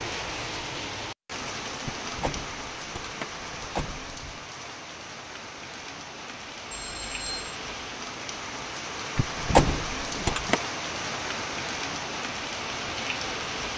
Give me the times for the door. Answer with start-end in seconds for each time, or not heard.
1.9-4.4, 9.2-10.6.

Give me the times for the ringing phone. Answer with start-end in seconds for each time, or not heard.
6.7-7.5.